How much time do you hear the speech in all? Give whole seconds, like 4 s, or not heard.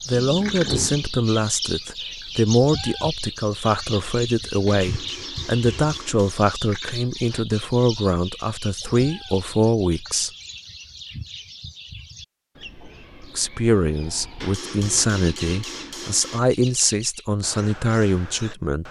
16 s.